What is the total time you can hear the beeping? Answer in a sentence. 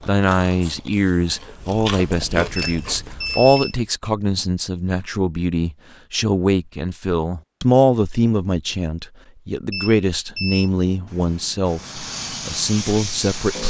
You can hear the beeping for 2 seconds altogether.